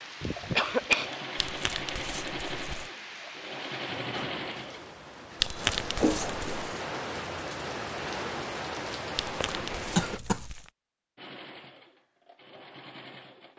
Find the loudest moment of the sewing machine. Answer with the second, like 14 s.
4 s.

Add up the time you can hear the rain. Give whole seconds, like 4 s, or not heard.
10 s.